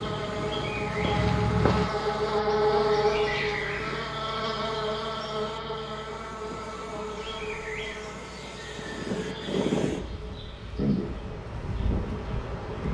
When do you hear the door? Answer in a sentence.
The door can't be heard in this clip.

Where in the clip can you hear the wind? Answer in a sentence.
You can hear the wind from 0.0 to 12.9 s.